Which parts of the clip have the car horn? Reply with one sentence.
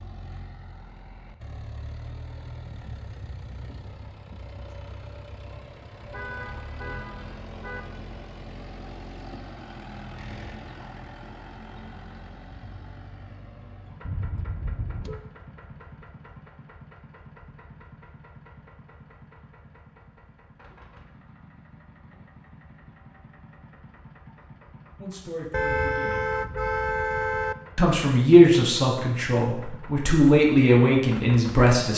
You can hear the car horn from 6.0 to 7.8 s, from 14.0 to 15.2 s and from 25.5 to 27.6 s.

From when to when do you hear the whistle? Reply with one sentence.
The whistle can't be heard in this clip.